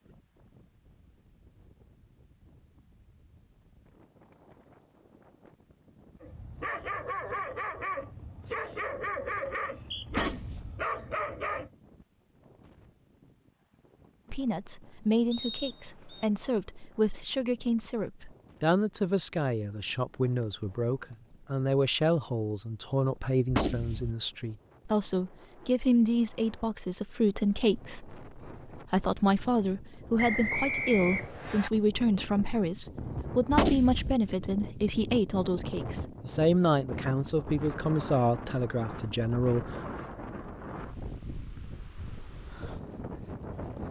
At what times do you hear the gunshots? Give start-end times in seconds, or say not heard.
10.1-10.8, 23.4-24.1, 33.5-34.1.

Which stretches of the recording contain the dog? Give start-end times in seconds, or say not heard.
6.2-11.7.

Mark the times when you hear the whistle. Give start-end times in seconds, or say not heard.
9.8-10.2, 15.3-16.2, 30.1-31.7.